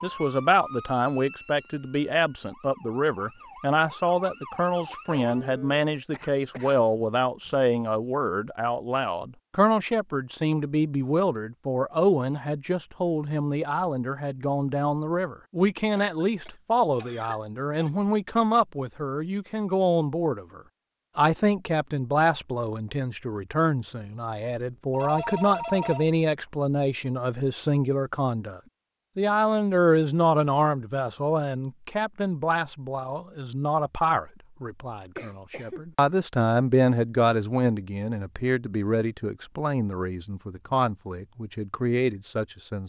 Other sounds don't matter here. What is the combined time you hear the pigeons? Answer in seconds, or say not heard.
not heard.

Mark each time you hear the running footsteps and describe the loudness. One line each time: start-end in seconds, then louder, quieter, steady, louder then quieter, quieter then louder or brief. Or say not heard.
not heard.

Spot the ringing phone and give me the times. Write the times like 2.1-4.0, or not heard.
24.7-26.1.